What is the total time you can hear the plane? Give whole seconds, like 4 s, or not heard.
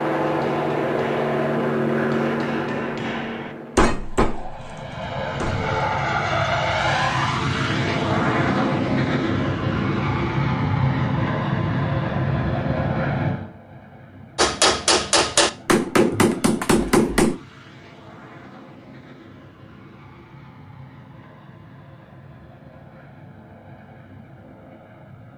25 s.